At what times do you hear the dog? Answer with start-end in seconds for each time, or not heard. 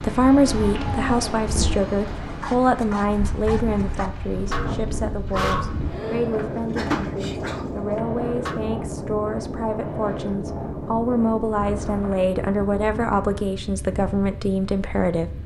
0.4-8.6.